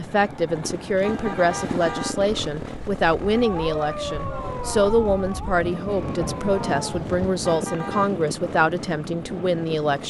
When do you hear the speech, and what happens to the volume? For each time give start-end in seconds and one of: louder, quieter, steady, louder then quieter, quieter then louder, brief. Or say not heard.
0.0-10.0 steady.